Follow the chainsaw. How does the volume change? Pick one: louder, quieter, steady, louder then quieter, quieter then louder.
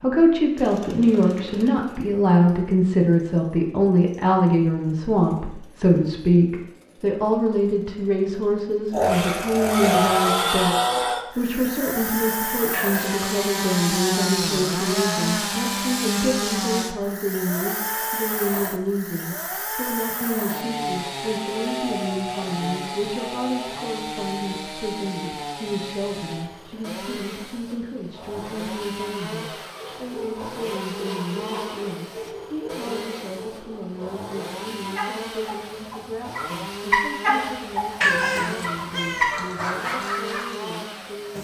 louder then quieter.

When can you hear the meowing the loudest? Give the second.
38 s.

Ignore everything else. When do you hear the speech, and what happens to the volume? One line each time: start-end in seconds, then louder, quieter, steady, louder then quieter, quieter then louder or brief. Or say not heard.
0.0-41.3 quieter.